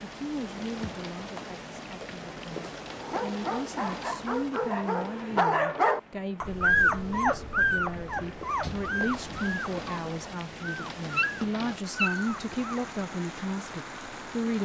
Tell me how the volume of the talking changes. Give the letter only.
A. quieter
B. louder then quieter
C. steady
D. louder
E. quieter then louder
D.